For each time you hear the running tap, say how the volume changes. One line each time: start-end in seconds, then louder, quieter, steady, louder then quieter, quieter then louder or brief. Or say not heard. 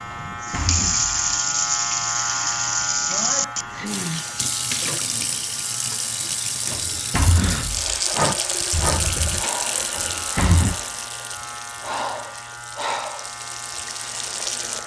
0.0-14.8 quieter.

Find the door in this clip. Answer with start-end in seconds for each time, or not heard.
0.1-1.2, 6.7-8.0, 9.9-10.8.